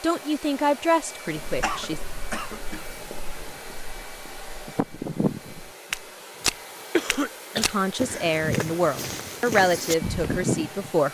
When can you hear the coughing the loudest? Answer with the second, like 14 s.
7 s.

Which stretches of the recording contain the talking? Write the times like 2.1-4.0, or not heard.
0.0-2.0, 7.5-11.1.